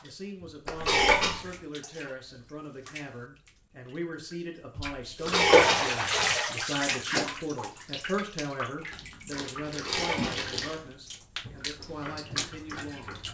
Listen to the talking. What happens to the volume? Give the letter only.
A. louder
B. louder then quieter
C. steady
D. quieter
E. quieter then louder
B.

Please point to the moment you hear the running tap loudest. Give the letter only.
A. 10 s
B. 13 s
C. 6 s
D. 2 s
C.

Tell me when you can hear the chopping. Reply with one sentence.
The chopping can be heard from 11.8 to 13.3 s.